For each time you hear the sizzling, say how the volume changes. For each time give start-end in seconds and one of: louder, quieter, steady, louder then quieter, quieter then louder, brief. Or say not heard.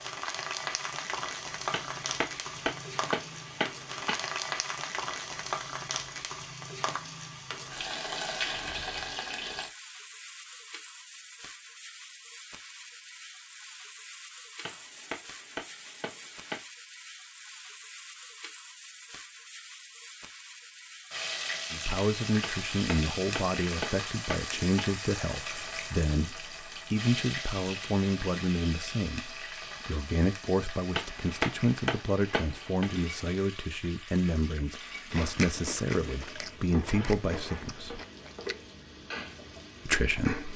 0.0-40.5 quieter.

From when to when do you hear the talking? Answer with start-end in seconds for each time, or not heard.
21.7-38.0, 39.9-40.5.